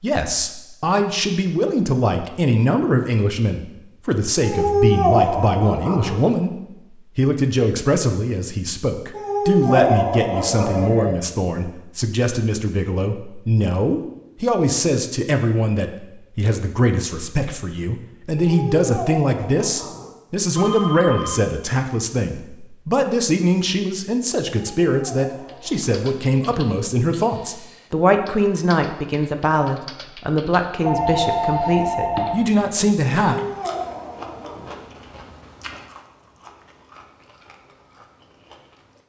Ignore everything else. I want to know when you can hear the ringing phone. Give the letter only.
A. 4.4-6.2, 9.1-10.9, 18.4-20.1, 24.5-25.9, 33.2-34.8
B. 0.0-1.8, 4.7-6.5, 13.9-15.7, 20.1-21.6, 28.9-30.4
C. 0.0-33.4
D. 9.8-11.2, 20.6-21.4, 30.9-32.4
D.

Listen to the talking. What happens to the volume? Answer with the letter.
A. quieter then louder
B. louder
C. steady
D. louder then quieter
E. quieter
C.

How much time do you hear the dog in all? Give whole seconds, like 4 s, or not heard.
8 s.